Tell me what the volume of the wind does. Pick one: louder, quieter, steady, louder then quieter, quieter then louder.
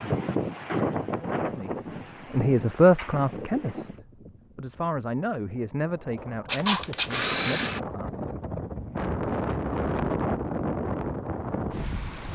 quieter then louder.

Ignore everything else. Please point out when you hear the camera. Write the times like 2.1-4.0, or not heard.
6.5-7.8.